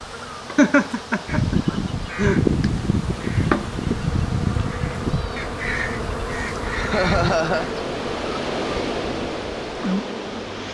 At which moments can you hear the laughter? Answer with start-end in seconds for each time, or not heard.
0.6-2.4, 6.8-7.7.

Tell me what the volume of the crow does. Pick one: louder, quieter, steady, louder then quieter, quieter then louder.
quieter.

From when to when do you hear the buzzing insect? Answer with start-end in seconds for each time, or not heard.
0.0-10.6.